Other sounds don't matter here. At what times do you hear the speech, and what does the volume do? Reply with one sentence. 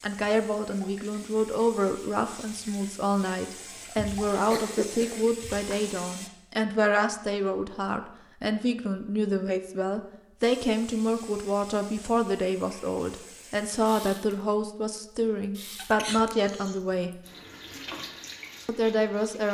You can hear the speech from 0.0 to 17.1 s, at a steady volume; and briefly from 18.6 to 19.4 s.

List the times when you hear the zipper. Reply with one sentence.
The zipper can't be heard in this clip.